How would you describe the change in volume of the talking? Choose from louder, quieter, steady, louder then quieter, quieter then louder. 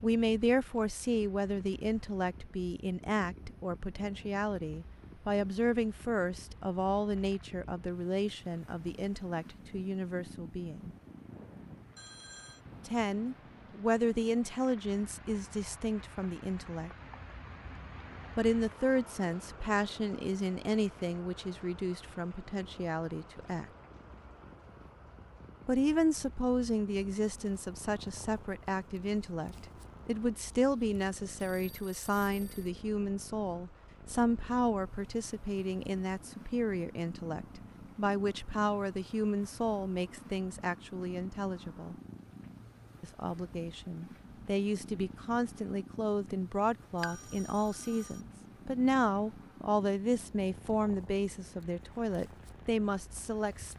steady.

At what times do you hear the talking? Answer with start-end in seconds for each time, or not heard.
0.0-10.9, 12.8-16.9, 18.4-23.6, 25.6-42.0, 43.0-53.7.